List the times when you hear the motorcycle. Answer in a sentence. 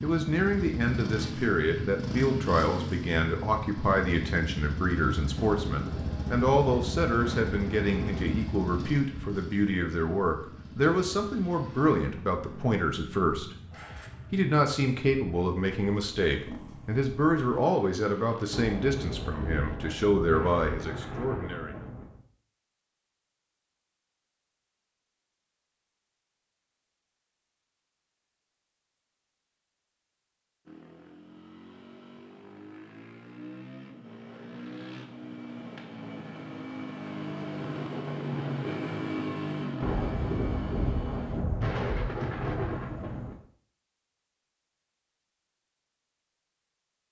You can hear the motorcycle from 0.0 to 19.8 s and from 30.6 to 41.4 s.